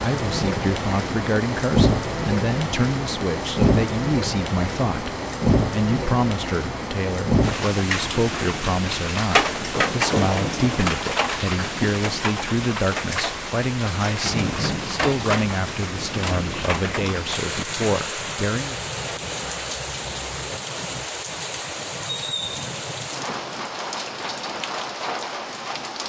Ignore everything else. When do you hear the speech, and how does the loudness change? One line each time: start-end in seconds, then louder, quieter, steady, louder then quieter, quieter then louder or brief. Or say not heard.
0.0-18.8 steady.